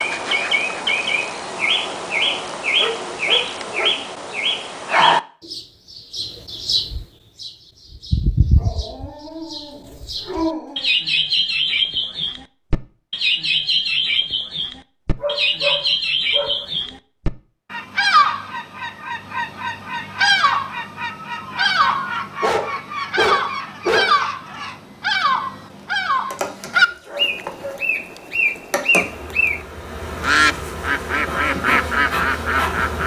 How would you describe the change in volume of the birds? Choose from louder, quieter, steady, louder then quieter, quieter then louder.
steady.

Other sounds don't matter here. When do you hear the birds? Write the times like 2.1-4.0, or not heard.
0.0-33.0.